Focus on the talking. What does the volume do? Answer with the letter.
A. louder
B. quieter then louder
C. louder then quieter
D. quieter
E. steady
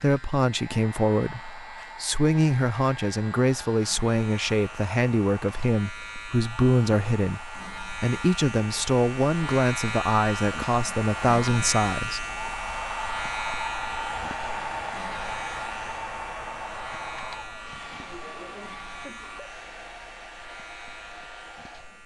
E.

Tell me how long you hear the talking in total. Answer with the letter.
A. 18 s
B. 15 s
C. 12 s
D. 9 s
C.